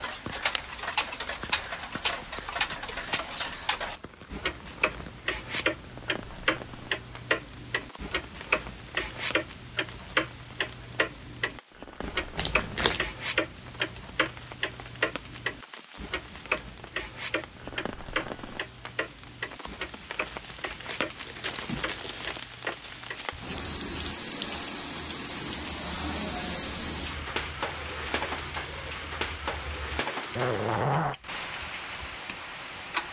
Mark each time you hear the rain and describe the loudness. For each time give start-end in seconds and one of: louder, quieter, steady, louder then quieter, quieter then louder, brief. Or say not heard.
0.0-33.0 louder.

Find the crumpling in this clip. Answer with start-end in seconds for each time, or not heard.
12.3-13.1, 20.4-22.4.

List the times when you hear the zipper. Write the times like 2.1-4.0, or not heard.
30.4-31.1.